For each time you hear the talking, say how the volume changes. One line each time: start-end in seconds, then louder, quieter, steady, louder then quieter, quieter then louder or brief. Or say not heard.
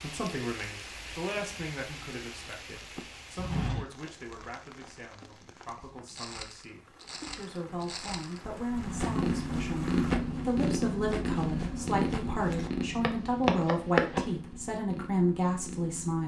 0.0-16.2 quieter then louder.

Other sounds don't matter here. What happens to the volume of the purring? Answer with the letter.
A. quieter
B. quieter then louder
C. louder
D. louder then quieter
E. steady
A.